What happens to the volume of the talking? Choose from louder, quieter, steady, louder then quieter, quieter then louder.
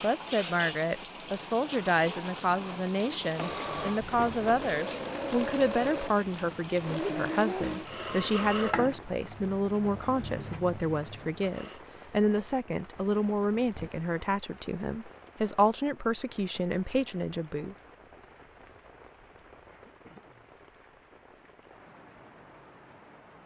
steady.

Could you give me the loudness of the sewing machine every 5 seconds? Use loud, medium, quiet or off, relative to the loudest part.
loud, loud, medium, off, off.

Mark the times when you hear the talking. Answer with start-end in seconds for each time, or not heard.
0.0-17.8.